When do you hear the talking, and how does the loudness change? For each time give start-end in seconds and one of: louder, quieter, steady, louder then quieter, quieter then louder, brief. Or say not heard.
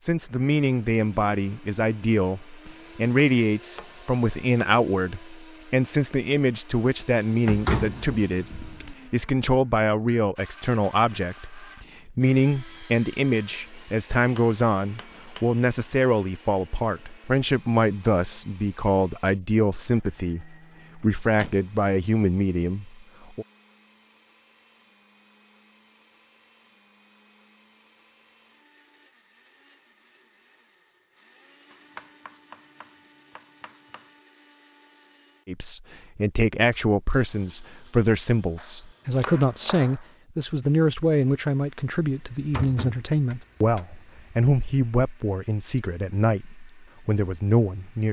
0.0-23.4 steady
35.5-48.0 steady.